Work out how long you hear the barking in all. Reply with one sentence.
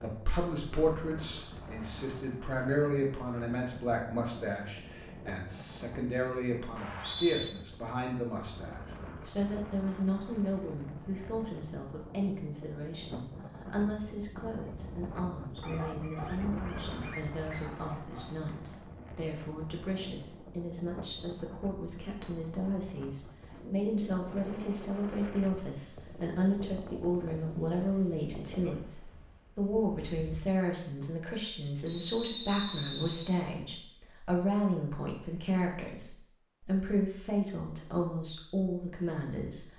You can hear the barking for 3 seconds altogether.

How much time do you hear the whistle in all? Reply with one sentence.
You can hear the whistle for 2 seconds altogether.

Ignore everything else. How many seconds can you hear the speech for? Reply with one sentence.
You can hear the speech for 40 seconds altogether.